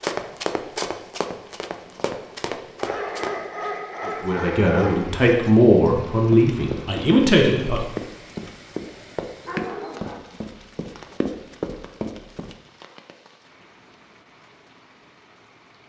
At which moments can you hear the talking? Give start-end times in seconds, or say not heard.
4.0-7.8.